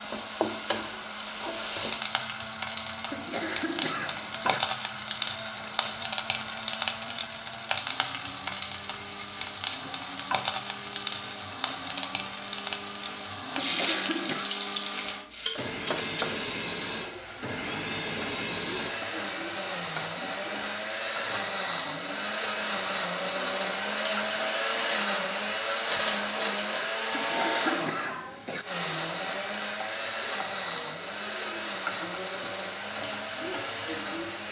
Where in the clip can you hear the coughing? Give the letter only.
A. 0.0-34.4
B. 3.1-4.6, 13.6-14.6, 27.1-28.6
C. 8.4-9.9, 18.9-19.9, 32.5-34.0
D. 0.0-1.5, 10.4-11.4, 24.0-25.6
B.